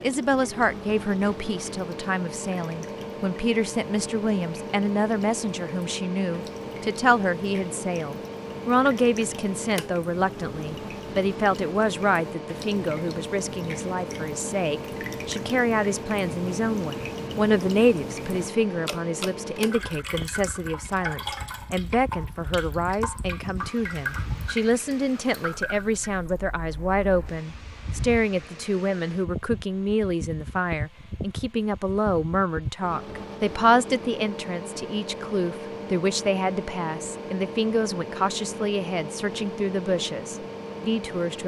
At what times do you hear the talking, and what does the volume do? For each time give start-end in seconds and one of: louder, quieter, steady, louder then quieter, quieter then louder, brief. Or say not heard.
0.0-41.4 steady.